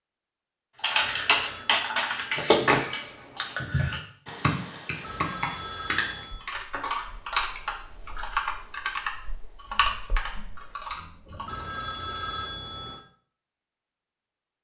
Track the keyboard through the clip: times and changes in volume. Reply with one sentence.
You can hear the keyboard from 0.8 to 11.7 s, getting quieter.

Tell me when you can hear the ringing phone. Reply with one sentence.
The ringing phone can be heard from 0.9 to 1.8 s, from 5.0 to 6.5 s and from 11.4 to 13.0 s.